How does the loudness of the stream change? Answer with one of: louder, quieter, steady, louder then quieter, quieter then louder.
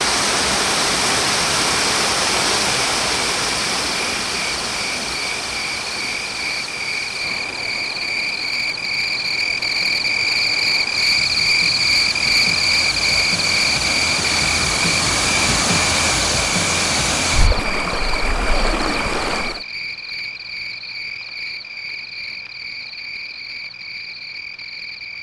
quieter then louder.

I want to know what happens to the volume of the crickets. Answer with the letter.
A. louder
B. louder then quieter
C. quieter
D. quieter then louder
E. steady
B.